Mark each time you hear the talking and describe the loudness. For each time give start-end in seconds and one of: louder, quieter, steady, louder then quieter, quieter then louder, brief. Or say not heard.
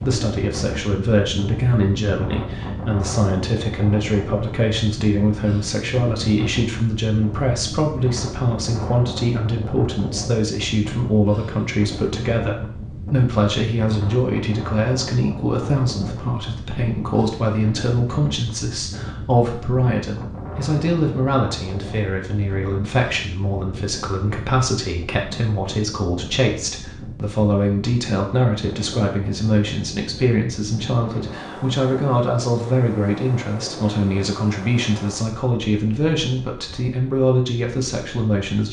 0.0-38.6 steady.